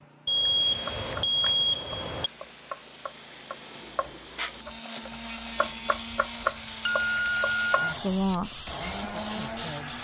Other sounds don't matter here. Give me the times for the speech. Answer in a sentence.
You can hear the speech from 8.0 to 9.9 s.